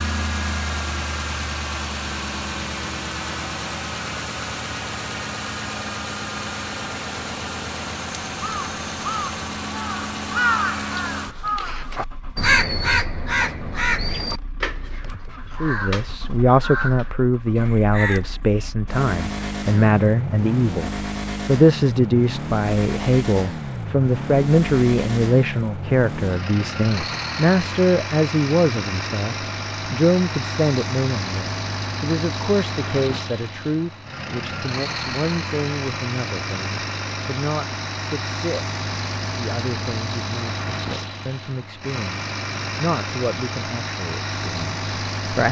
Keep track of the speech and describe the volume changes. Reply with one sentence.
The volume of the speech goes down.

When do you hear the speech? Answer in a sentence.
The speech can be heard from 15.6 to 45.4 s.